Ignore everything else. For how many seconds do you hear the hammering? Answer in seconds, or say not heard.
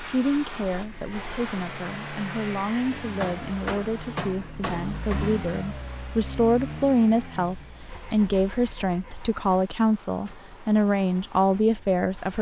2 s.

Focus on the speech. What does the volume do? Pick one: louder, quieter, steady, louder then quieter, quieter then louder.
louder.